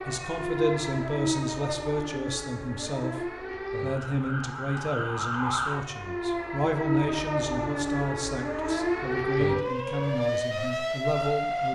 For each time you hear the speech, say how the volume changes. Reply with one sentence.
You can hear the speech from 0.1 to 11.6 s, at a steady volume.